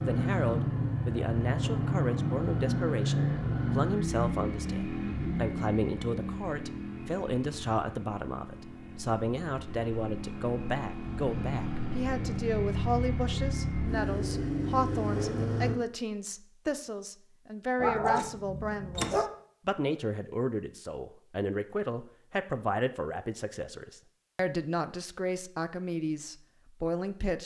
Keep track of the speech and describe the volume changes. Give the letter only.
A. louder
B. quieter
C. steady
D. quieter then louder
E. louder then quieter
C.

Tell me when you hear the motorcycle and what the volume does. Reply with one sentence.
The motorcycle can be heard from 0.0 to 15.8 s, getting quieter then louder.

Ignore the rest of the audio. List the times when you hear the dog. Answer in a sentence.
You can hear the dog from 17.8 to 19.2 s.